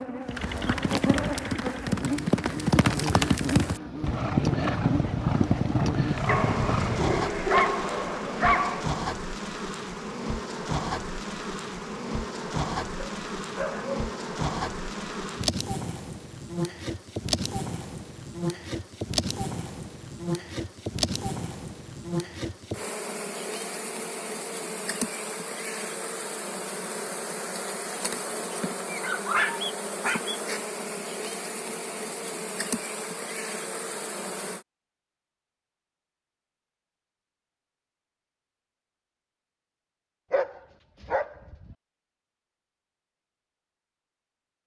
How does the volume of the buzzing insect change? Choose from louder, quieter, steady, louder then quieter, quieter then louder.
steady.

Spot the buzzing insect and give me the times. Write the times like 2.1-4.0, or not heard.
0.0-34.6.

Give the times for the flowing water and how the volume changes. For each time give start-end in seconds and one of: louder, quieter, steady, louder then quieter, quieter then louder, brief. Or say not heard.
not heard.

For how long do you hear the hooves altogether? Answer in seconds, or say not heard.
7 s.